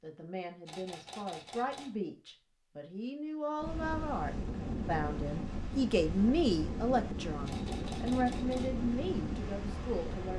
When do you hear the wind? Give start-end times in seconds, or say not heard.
3.5-10.3.